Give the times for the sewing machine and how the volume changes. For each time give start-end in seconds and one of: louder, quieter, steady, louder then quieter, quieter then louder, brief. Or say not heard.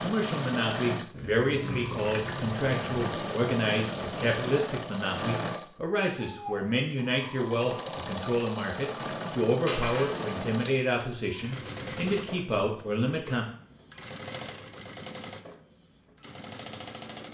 0.0-17.2 quieter.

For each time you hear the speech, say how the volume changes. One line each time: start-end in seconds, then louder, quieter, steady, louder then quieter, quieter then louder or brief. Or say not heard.
0.0-13.4 steady.